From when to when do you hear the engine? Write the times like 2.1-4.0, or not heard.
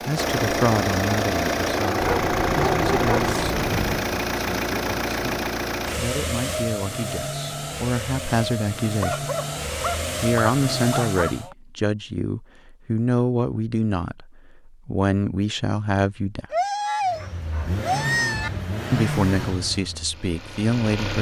0.0-11.5, 17.1-21.1.